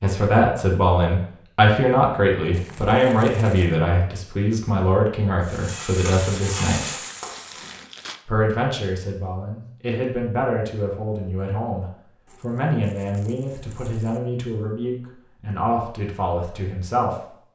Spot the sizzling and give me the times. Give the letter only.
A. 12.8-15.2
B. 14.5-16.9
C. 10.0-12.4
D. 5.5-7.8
D.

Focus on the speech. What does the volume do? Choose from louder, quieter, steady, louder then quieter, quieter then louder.
quieter.